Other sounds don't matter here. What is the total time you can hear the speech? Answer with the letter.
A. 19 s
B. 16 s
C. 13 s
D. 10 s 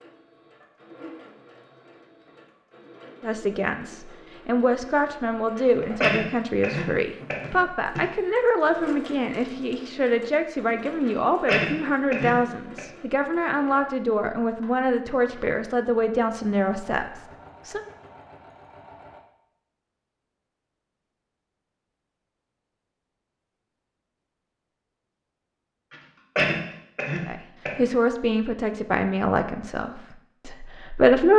A.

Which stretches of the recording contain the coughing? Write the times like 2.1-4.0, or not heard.
5.5-8.1, 11.1-12.8, 25.9-27.9.